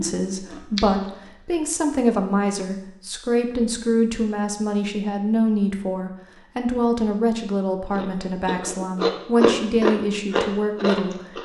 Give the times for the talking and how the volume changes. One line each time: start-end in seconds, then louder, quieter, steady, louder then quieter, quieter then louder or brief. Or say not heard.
0.0-11.4 steady.